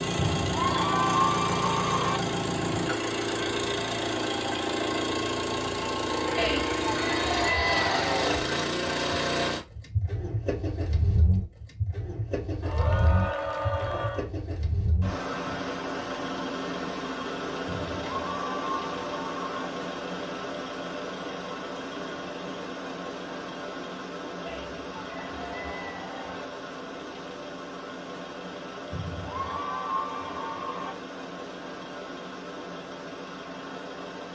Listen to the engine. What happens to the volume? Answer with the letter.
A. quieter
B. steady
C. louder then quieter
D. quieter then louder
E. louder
A.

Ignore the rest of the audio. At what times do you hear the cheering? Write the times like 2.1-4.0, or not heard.
0.1-2.2, 6.3-8.4, 12.6-14.3, 17.6-19.6, 24.4-26.4, 28.9-30.9.